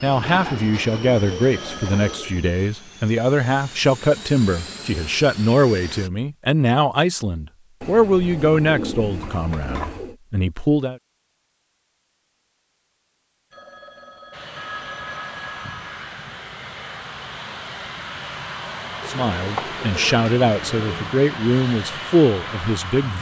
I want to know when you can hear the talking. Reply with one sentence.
You can hear the talking from 0.0 to 10.9 s and from 19.1 to 23.1 s.